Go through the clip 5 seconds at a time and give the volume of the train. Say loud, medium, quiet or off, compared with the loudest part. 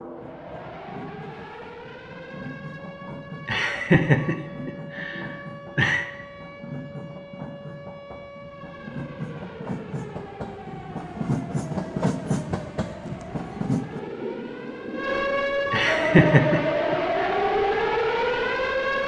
medium, medium, loud, medium.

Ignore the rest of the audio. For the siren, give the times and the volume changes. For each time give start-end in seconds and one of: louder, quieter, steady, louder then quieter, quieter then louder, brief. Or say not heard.
0.1-19.0 louder.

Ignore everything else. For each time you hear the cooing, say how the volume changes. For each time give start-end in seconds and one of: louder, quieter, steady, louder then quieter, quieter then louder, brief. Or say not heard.
not heard.